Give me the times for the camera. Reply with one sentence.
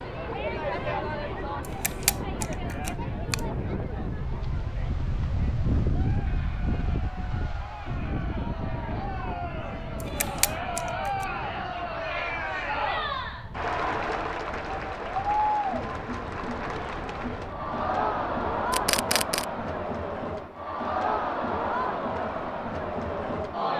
You can hear the camera from 1.6 to 3.4 s, from 10.0 to 11.2 s and from 18.7 to 19.4 s.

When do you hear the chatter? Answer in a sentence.
The chatter can be heard from 0.0 to 23.7 s.